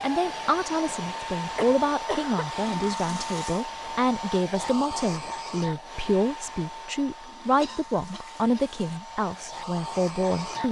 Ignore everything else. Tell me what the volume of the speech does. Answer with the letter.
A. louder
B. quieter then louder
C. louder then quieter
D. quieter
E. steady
E.